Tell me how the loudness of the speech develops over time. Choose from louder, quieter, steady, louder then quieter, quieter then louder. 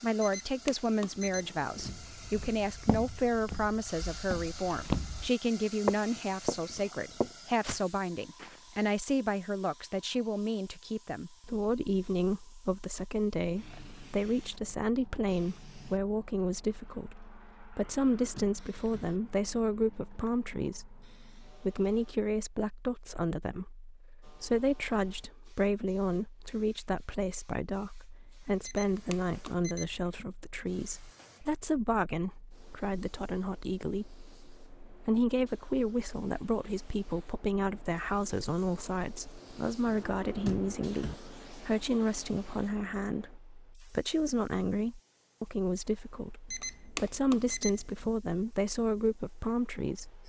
steady.